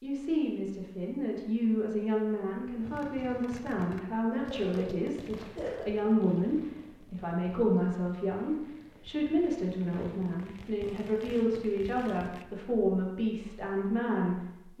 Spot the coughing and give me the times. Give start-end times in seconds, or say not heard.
4.3-5.9.